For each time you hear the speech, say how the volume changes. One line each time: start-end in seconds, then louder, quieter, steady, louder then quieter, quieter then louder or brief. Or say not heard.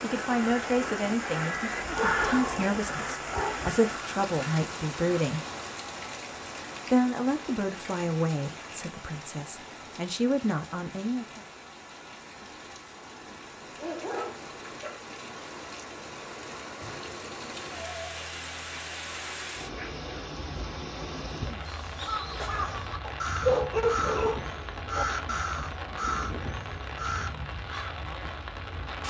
0.0-5.5 quieter then louder
6.8-11.4 quieter then louder.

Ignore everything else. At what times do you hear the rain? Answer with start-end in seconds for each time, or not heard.
0.0-29.0.